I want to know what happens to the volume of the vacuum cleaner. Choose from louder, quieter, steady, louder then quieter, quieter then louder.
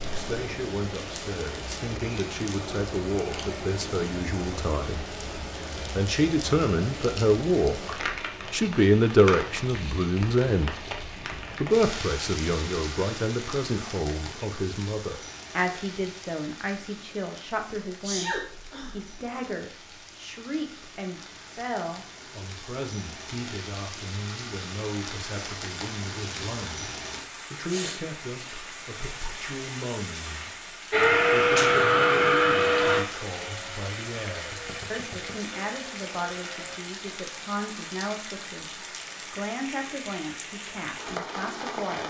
quieter.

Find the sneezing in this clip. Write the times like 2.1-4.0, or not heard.
18.0-19.1.